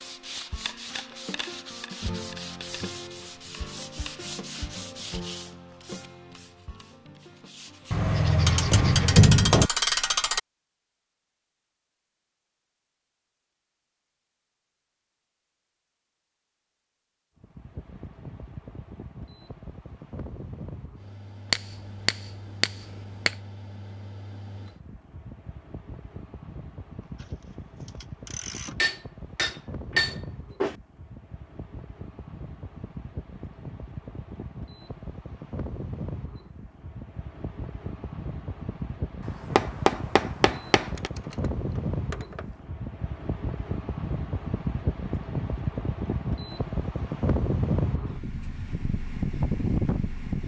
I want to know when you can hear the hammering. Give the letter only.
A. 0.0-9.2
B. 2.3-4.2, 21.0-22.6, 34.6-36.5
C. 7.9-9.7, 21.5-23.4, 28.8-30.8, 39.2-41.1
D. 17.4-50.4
C.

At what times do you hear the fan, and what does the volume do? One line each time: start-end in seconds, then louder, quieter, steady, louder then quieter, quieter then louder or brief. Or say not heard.
17.4-50.4 louder.